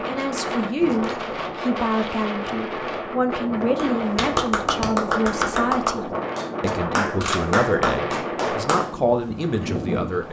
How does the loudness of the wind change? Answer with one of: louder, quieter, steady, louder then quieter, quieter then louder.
steady.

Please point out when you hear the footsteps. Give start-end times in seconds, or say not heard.
not heard.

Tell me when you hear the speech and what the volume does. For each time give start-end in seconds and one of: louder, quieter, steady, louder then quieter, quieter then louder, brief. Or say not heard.
0.0-10.2 steady.